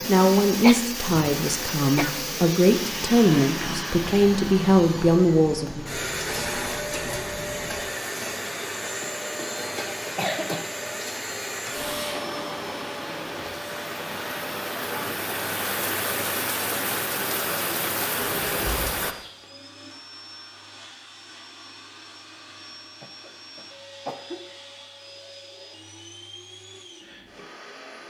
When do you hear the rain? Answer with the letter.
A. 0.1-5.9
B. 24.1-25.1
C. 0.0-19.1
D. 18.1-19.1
C.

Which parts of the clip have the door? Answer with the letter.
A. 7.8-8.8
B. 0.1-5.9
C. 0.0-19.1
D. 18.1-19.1
D.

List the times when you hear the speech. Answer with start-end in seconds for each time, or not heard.
0.1-5.9.